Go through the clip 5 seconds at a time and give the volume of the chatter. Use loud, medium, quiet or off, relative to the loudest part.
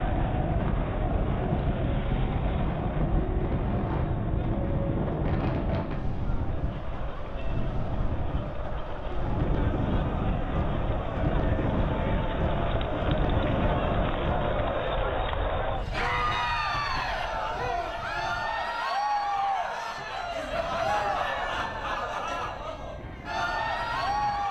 medium, medium, loud, loud, loud.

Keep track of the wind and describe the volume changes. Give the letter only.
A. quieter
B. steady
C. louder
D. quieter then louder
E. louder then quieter
A.